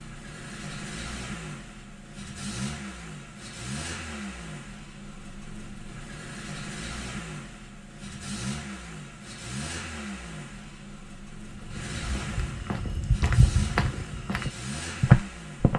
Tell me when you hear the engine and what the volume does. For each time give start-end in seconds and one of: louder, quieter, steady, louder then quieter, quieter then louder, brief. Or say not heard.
0.0-15.7 steady.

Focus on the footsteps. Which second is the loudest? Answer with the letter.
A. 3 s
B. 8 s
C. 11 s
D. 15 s
D.